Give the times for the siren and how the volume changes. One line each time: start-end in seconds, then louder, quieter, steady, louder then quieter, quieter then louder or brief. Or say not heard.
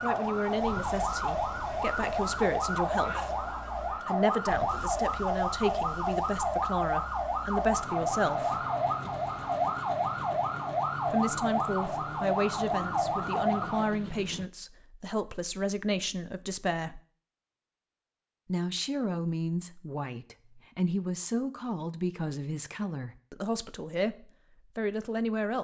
0.0-13.9 steady.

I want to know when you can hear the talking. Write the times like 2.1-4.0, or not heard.
0.0-3.5, 4.0-8.7, 11.1-17.0, 18.4-24.1, 24.8-25.5.